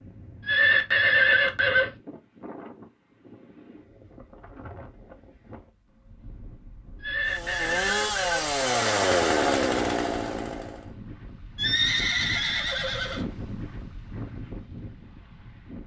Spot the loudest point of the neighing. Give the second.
1 s.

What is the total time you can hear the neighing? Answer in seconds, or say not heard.
5 s.